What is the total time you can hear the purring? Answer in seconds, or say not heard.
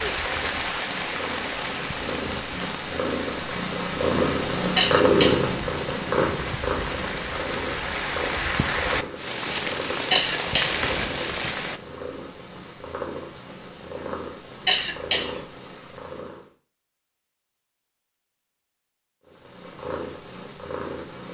18 s.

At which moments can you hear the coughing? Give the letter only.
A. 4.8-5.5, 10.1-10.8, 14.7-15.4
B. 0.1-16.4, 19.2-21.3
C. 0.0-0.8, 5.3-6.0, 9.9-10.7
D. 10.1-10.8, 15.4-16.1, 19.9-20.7
A.